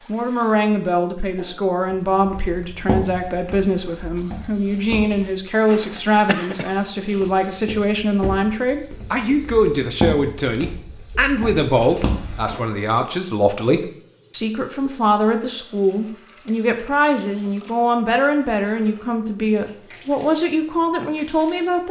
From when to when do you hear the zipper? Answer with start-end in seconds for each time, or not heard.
not heard.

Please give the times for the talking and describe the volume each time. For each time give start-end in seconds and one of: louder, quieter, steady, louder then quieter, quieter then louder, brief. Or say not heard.
0.1-21.8 steady.